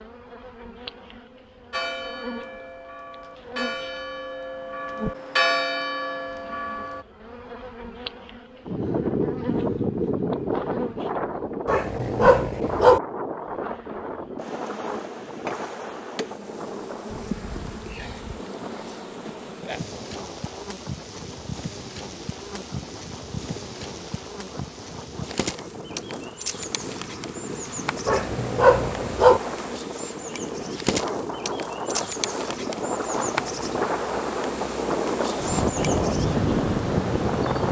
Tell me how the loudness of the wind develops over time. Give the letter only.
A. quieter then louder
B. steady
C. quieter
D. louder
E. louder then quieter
A.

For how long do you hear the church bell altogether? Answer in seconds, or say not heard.
5 s.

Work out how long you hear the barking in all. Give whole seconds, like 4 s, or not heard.
3 s.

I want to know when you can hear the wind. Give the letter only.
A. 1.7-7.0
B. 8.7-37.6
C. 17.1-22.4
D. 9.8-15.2
B.